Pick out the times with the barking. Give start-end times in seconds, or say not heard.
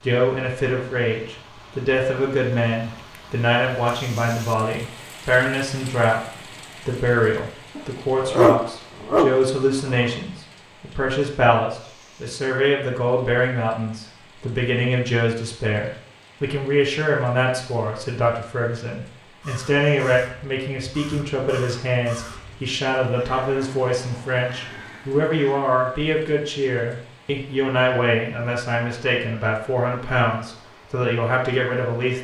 7.8-10.1.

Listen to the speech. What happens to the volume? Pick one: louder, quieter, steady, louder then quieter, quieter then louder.
steady.